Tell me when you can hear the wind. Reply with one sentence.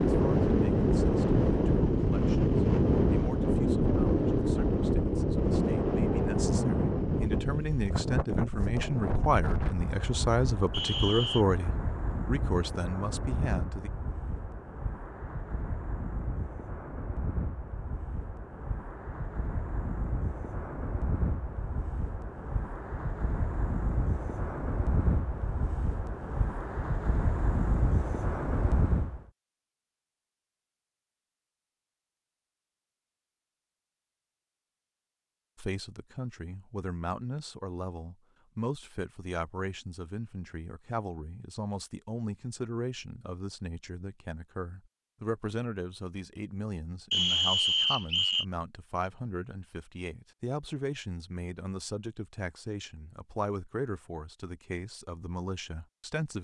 You can hear the wind from 0.0 to 29.2 s.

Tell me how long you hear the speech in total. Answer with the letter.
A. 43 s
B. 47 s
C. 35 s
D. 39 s
C.